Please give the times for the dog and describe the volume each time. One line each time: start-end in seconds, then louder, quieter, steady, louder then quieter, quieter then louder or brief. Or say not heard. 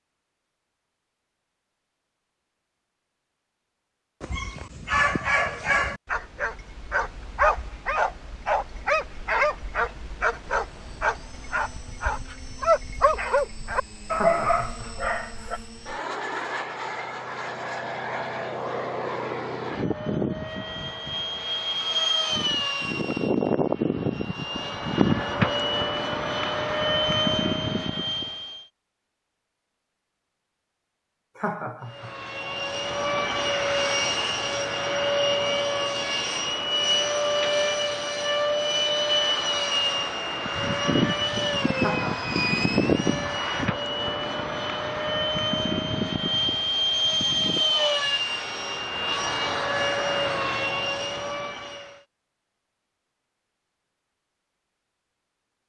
4.2-15.6 steady.